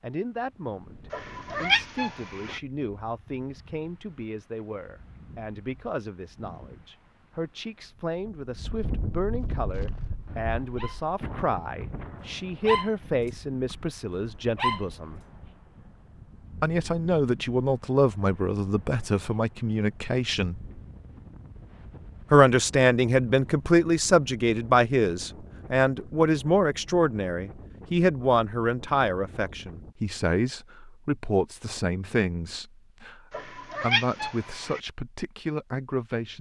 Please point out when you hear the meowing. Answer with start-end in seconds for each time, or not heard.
1.1-2.6, 33.3-34.8.